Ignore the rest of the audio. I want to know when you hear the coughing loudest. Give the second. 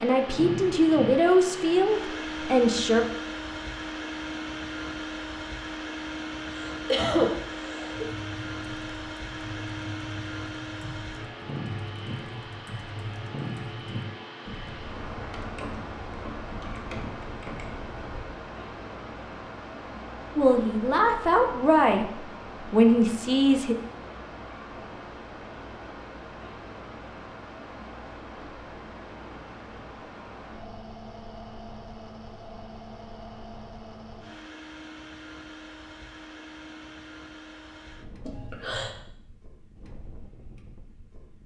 7 s.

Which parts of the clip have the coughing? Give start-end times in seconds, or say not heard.
6.5-8.1, 38.2-39.0.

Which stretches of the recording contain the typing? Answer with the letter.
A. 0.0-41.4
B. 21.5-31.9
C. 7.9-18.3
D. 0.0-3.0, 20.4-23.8
C.